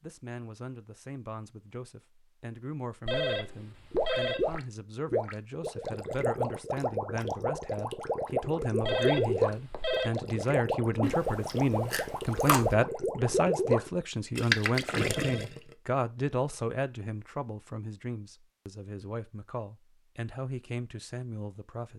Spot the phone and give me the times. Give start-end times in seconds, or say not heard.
3.0-4.6, 8.8-10.1, 15.1-15.7.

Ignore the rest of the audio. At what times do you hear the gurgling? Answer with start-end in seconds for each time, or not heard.
3.9-15.8.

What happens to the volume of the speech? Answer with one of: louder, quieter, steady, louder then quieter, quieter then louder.
louder then quieter.